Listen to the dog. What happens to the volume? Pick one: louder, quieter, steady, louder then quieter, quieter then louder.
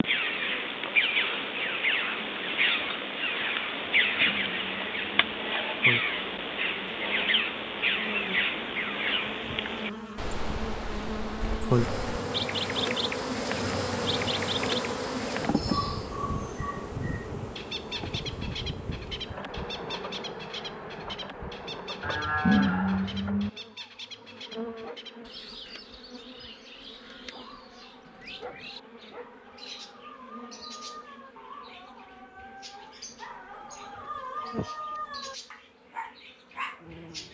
louder.